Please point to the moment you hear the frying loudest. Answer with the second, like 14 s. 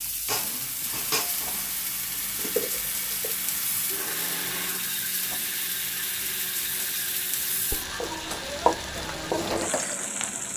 9 s.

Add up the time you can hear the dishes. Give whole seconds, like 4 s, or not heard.
6 s.